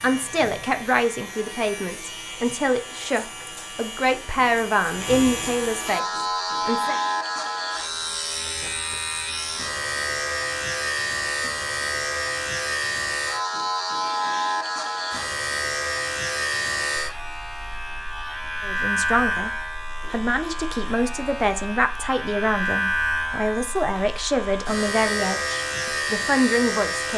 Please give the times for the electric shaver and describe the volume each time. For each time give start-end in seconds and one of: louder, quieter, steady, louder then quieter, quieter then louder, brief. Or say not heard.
0.0-27.1 louder.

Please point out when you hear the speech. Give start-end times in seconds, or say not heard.
0.0-7.0, 18.6-19.5, 20.1-27.1.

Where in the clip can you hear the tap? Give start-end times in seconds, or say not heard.
not heard.